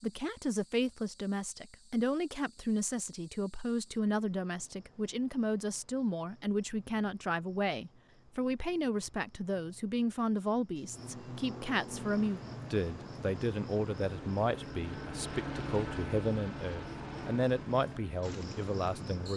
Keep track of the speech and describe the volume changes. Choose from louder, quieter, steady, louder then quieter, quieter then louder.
steady.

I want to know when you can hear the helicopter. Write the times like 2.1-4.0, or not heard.
12.2-19.3.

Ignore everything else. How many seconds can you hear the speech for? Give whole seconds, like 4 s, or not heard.
19 s.